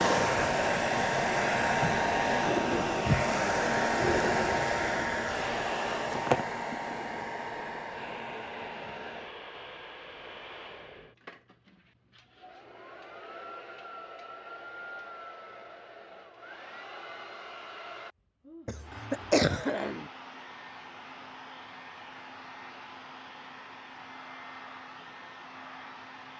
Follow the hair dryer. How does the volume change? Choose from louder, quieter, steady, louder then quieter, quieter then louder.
quieter.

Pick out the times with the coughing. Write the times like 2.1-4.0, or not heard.
18.6-20.1.